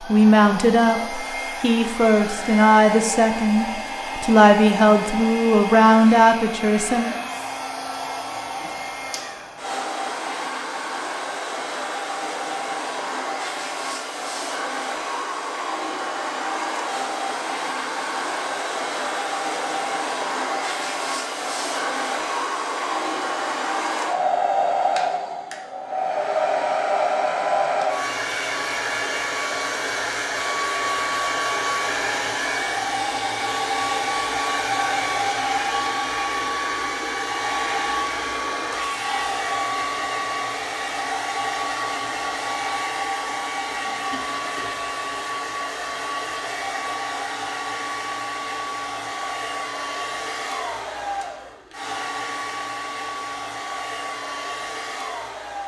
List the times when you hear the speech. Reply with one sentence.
You can hear the speech from 0.0 to 7.1 s.